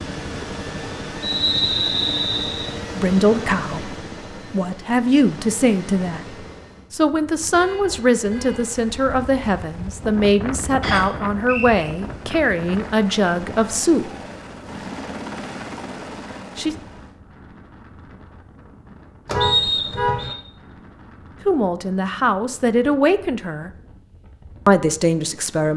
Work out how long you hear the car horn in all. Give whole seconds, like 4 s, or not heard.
2 s.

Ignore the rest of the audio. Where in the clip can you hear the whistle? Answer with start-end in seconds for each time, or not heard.
1.2-2.7, 10.8-11.9, 19.4-20.4.